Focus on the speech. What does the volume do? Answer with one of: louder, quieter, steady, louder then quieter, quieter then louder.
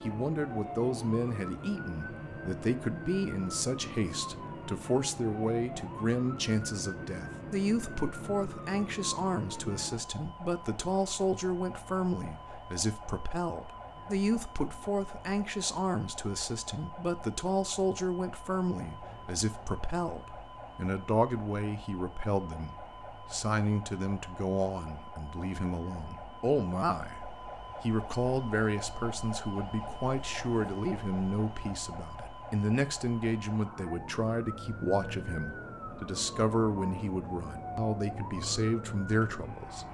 steady.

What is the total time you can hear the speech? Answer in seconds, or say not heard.
39 s.